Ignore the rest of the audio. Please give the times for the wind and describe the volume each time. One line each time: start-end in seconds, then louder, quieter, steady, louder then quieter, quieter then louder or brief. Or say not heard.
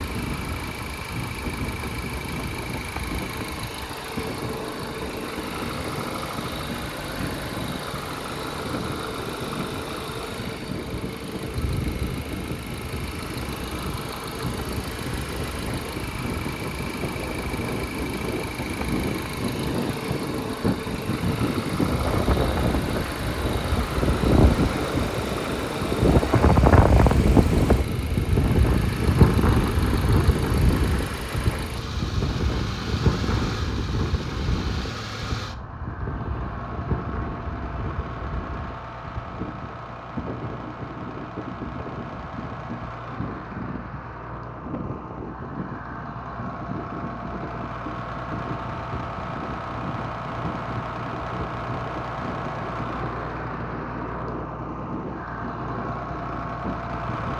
0.0-57.3 louder then quieter.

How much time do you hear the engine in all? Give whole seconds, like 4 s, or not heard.
57 s.